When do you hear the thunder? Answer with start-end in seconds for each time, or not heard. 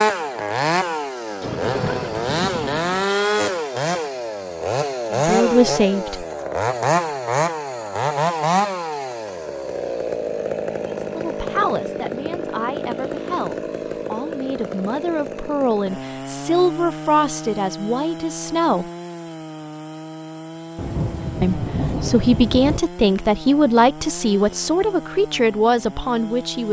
1.4-3.0, 20.8-22.8.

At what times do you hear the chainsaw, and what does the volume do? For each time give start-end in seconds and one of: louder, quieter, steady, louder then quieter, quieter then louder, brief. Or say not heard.
0.0-26.6 quieter.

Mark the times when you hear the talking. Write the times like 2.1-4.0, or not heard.
5.1-6.2, 11.0-18.9, 21.4-26.6.